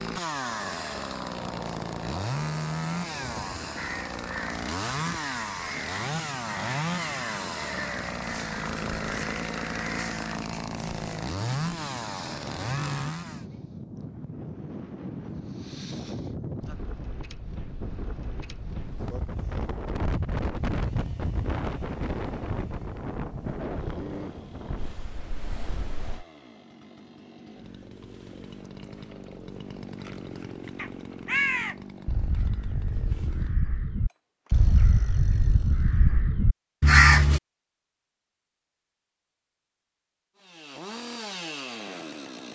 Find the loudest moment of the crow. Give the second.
37 s.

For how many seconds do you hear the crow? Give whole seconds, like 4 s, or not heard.
13 s.